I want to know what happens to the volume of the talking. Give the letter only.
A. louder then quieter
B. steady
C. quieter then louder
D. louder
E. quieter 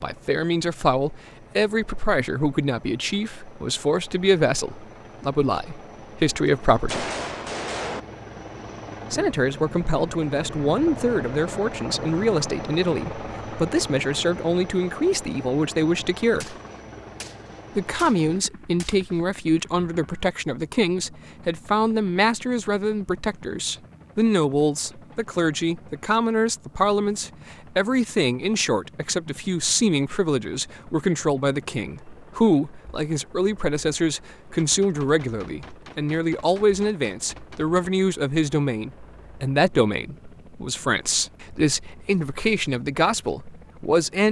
B.